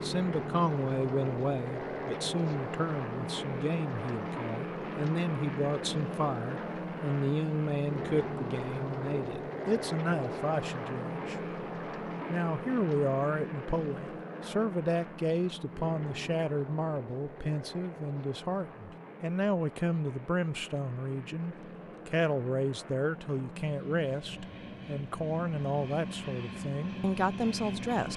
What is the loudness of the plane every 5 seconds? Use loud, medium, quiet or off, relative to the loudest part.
loud, loud, loud, medium, medium, loud.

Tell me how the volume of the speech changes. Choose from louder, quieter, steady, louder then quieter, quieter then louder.
steady.